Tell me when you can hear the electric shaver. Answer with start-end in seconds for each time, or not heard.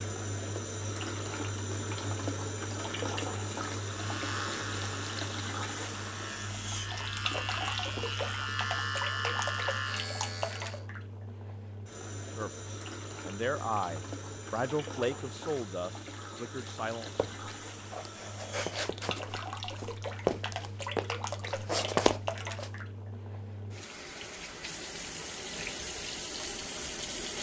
3.8-10.8.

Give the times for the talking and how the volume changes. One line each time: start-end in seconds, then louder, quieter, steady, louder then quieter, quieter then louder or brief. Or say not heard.
12.3-17.1 quieter.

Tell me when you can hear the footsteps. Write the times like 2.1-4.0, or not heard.
17.1-22.7.